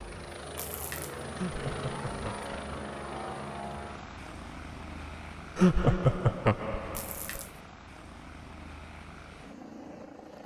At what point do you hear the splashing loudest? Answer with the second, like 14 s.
1 s.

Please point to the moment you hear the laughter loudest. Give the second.
6 s.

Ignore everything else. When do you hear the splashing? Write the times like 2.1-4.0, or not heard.
0.6-1.2, 7.0-7.6.